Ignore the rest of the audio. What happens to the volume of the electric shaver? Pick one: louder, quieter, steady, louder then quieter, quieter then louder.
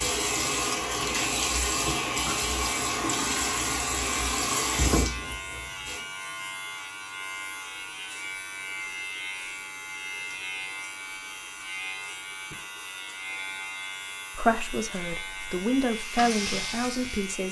steady.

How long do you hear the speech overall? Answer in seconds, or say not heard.
3 s.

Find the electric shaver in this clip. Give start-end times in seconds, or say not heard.
0.0-17.4.